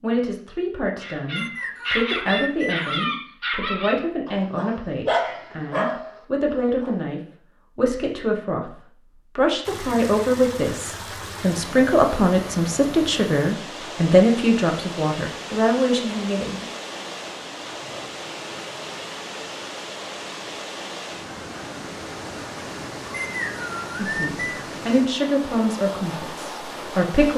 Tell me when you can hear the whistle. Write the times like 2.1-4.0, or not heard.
1.4-3.1, 23.2-24.6.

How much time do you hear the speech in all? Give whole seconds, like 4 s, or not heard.
20 s.